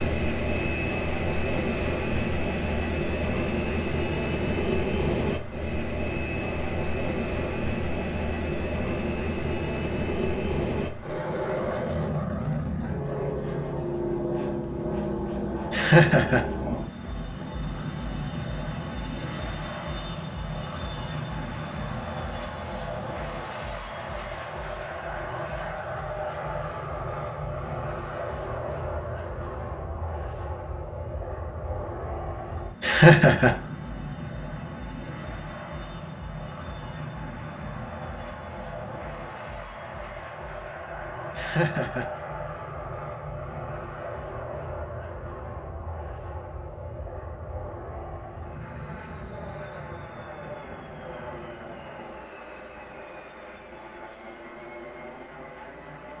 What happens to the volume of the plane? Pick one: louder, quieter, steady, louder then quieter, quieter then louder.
quieter.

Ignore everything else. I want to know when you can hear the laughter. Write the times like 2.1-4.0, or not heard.
15.7-16.4, 32.8-33.5, 41.4-42.1.